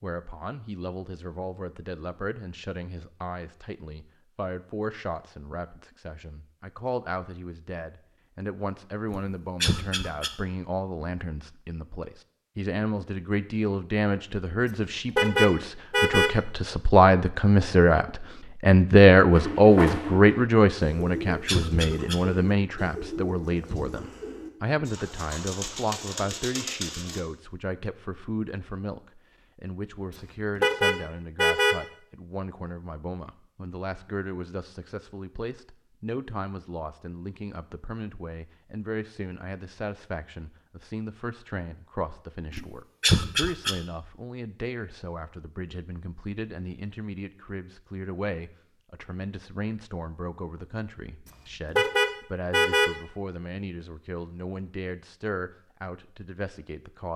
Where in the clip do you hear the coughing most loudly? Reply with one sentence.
The loudest moment of the coughing is at 43 seconds.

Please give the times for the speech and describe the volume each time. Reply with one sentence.
You can hear the speech from 0.0 to 57.1 s, getting louder then quieter.